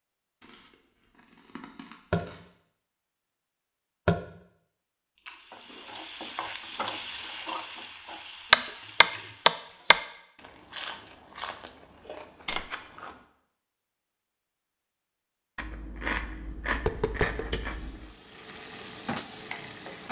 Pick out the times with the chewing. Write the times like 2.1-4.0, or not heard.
0.4-2.5, 5.2-7.3, 10.3-13.2, 15.6-18.1.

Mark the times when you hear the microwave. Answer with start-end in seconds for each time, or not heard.
not heard.